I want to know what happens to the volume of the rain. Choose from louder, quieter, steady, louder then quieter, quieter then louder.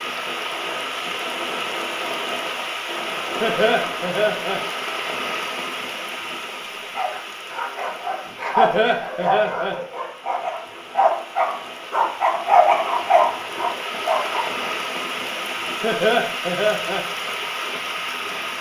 quieter then louder.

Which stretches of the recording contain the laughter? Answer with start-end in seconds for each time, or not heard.
3.4-4.6, 8.6-9.8, 15.8-17.1.